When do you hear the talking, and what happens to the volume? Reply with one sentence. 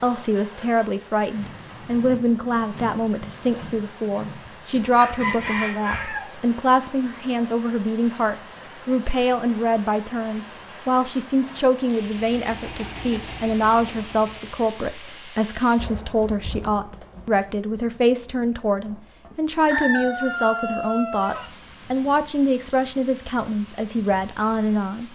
You can hear the talking from 0.0 to 25.0 s, at a steady volume.